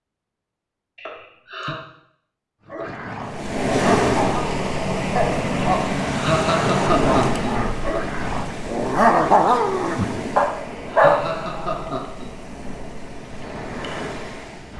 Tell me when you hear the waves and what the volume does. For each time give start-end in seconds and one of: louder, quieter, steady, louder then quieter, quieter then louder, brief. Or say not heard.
3.2-14.7 quieter.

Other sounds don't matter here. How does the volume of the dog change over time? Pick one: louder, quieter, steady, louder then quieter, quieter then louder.
louder.